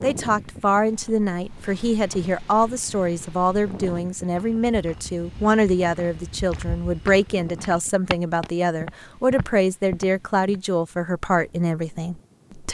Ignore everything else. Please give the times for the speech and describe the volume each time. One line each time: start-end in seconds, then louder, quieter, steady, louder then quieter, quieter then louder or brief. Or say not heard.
0.0-12.6 steady.